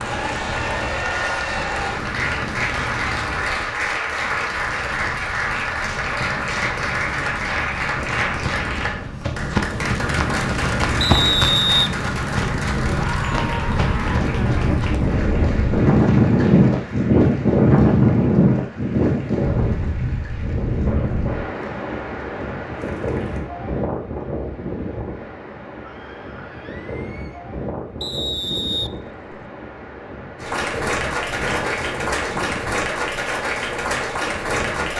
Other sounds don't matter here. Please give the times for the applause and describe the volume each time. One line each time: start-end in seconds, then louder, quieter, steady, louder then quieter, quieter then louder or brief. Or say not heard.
0.0-23.4 quieter
30.4-34.9 steady.